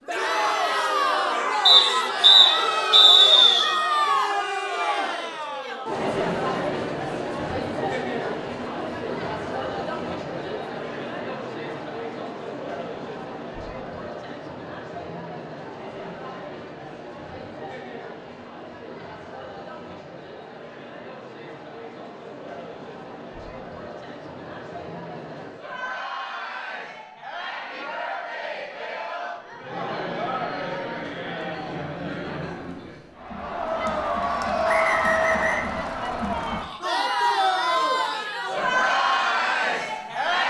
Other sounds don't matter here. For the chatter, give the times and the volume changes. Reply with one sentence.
The chatter can be heard from 0.1 to 40.4 s, getting quieter then louder.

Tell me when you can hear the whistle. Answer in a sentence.
You can hear the whistle from 1.6 to 3.6 s and from 34.6 to 35.7 s.